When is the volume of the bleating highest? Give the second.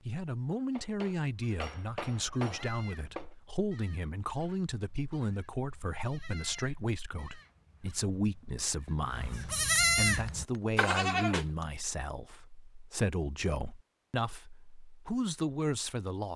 10 s.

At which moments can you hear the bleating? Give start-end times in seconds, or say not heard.
1.2-11.4.